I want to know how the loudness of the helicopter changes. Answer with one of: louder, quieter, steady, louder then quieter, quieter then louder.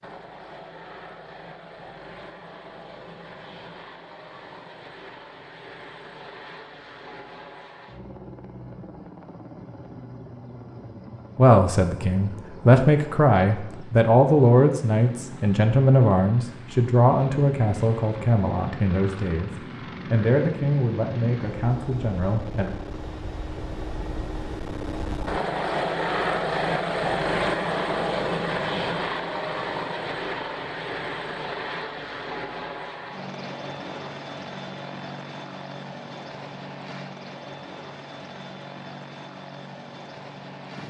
louder then quieter.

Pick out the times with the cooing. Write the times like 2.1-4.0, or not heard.
not heard.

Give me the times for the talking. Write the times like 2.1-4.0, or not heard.
11.3-22.7.